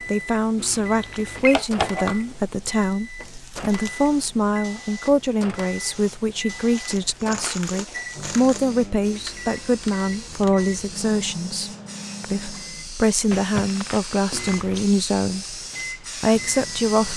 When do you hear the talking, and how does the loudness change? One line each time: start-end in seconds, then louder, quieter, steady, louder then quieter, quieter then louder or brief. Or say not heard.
0.1-15.6 steady
16.2-17.1 brief.